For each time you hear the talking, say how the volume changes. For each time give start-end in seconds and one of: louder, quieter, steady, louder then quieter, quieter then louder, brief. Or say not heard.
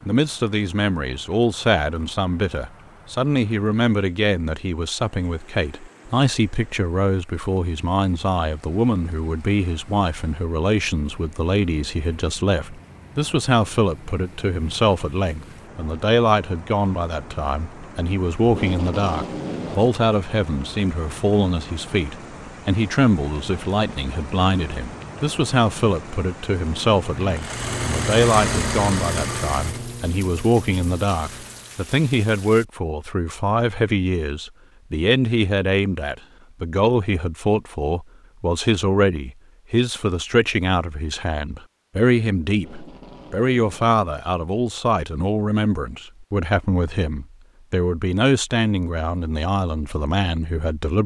0.0-51.0 steady.